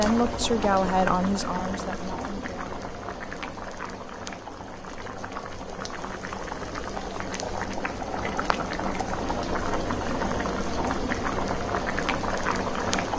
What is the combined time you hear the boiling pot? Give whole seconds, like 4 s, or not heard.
13 s.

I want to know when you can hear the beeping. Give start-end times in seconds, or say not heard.
not heard.